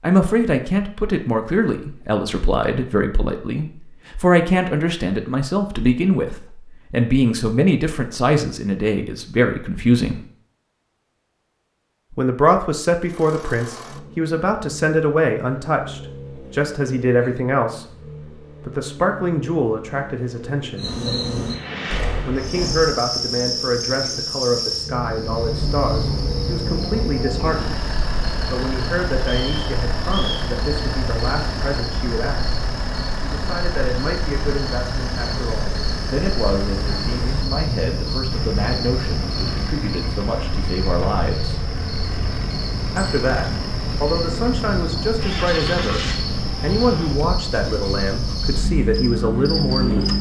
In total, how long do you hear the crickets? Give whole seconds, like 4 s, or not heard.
29 s.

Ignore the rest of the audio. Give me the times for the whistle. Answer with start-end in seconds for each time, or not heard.
29.2-30.5.